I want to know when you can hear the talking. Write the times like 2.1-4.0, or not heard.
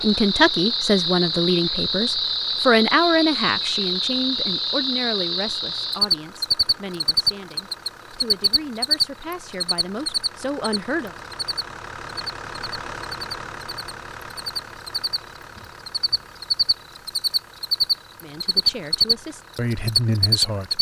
0.0-11.2, 18.2-20.7.